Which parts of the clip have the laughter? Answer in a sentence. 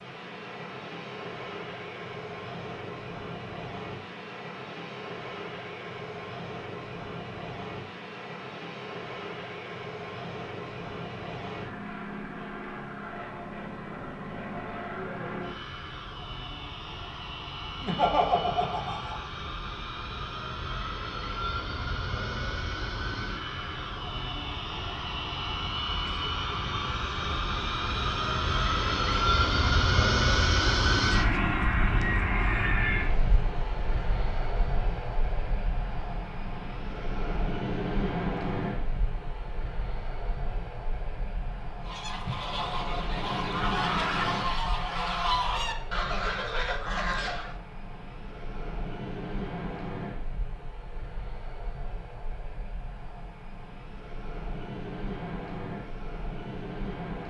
The laughter can be heard from 17.8 to 19.2 s.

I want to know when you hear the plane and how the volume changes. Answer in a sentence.
You can hear the plane from 0.0 to 57.2 s, getting louder then quieter.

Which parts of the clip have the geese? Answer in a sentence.
You can hear the geese from 41.8 to 47.5 s.